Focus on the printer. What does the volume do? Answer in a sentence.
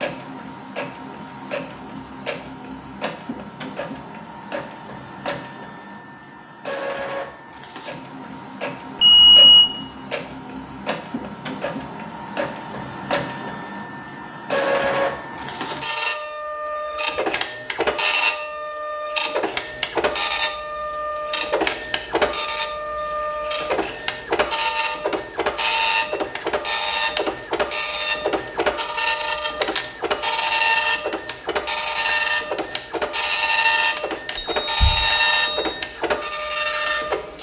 The volume of the printer goes up.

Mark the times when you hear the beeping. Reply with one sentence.
The beeping can be heard from 9.0 to 9.7 s and from 34.4 to 35.8 s.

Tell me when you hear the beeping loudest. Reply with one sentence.
The volume of the beeping peaks at 9 seconds.